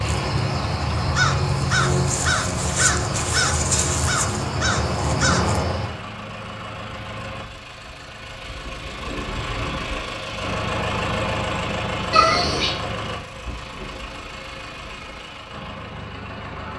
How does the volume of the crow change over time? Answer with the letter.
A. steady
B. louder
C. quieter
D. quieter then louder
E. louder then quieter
A.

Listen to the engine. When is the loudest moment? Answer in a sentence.
The loudest moment of the engine is at 11 seconds.